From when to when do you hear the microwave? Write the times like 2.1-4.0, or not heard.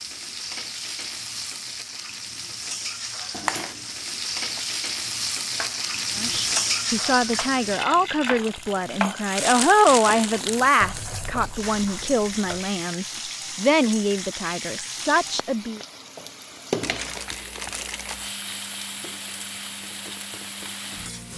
not heard.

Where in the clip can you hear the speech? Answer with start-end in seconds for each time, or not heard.
6.2-15.8.